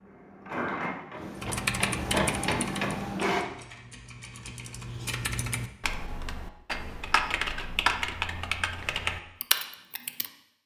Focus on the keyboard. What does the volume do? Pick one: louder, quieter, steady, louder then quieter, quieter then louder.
quieter then louder.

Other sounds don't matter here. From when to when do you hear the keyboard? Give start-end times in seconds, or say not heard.
1.4-10.3.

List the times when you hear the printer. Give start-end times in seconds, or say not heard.
0.0-3.5.